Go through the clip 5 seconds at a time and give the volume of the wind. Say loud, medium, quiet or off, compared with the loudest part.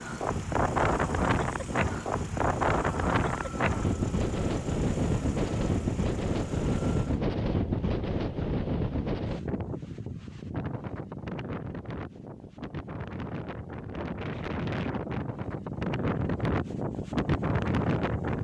loud, loud, medium, loud.